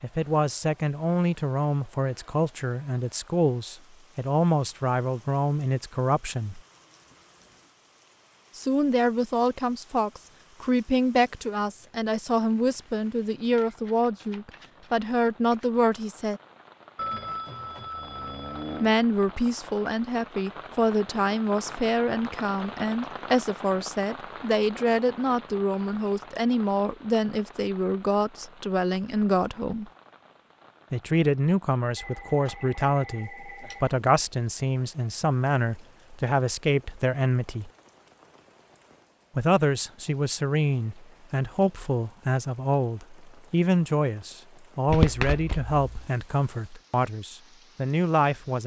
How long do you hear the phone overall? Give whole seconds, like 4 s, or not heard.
4 s.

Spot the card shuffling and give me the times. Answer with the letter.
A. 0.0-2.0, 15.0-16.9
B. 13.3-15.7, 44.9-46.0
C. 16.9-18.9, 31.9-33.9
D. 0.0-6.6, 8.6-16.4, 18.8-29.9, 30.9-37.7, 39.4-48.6
B.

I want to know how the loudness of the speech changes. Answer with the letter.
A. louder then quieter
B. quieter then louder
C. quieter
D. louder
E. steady
E.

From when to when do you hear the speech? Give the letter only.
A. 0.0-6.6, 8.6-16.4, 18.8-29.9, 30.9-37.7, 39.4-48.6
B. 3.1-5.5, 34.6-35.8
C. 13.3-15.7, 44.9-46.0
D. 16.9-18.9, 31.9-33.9
A.